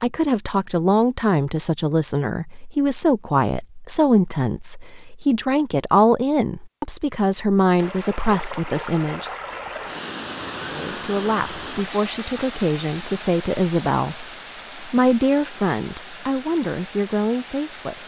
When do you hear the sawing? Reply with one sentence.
You can't hear the sawing here.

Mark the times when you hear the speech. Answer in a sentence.
You can hear the speech from 0.0 to 9.3 s and from 10.6 to 18.0 s.